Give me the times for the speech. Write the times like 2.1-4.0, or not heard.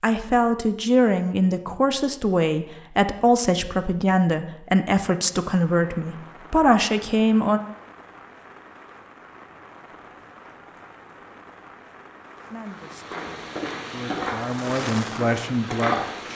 0.0-7.6, 12.5-16.3.